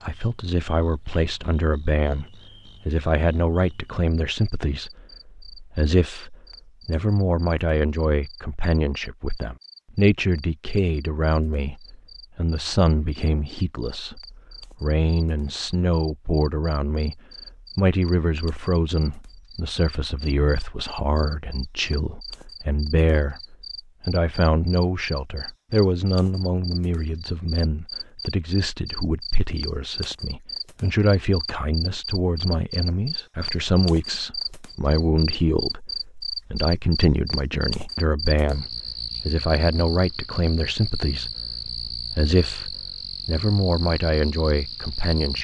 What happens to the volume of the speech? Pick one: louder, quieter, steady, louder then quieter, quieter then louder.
steady.